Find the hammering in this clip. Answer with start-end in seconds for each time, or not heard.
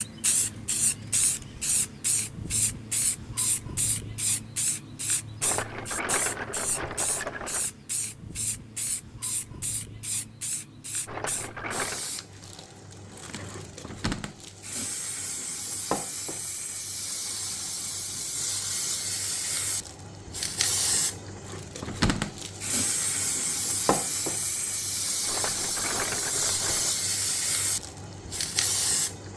not heard.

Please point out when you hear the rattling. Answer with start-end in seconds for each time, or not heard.
5.4-7.7, 11.1-12.1, 25.2-26.9.